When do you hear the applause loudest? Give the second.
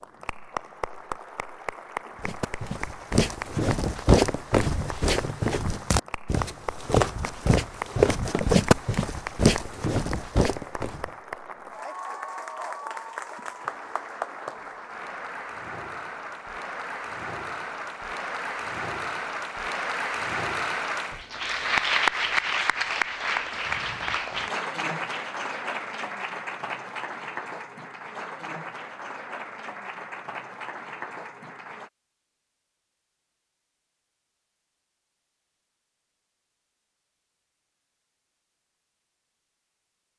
22 s.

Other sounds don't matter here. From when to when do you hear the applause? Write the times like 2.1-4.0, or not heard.
0.0-31.9.